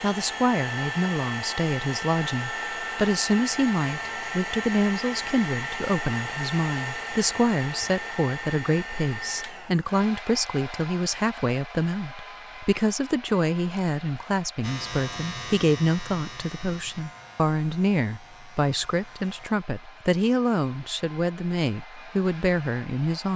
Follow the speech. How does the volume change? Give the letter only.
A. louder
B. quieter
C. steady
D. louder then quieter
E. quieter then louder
C.